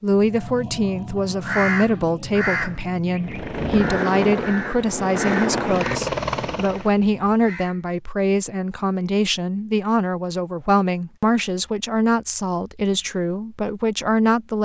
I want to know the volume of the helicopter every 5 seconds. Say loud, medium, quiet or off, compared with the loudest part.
loud, loud, off.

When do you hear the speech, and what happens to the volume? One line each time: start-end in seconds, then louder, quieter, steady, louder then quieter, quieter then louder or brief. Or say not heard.
0.0-14.6 steady.